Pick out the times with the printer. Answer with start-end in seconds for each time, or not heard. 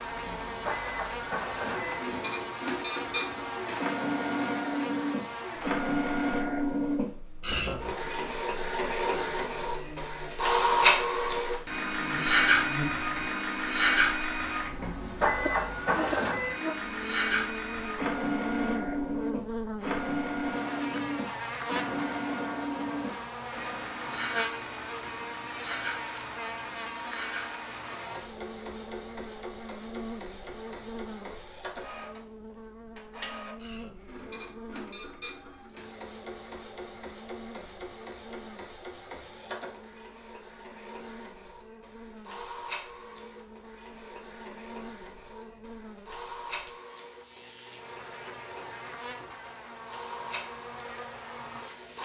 0.0-51.9.